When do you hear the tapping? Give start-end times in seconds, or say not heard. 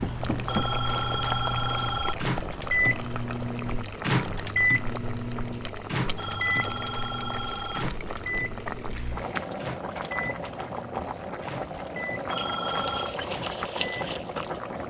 0.0-2.4.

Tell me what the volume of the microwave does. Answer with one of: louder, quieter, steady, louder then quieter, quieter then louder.
quieter.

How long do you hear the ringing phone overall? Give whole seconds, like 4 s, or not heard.
4 s.